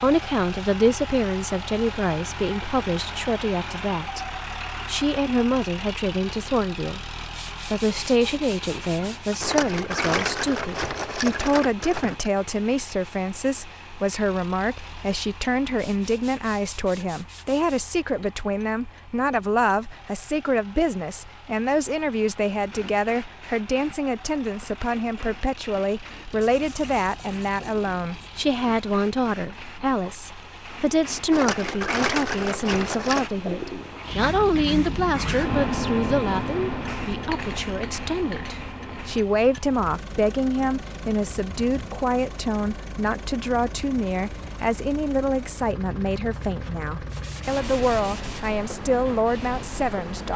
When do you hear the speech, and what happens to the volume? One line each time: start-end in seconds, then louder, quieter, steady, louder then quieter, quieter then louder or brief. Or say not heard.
0.0-50.3 steady.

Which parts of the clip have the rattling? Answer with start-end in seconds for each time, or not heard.
9.4-12.2, 31.3-33.3.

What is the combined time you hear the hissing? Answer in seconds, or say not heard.
17 s.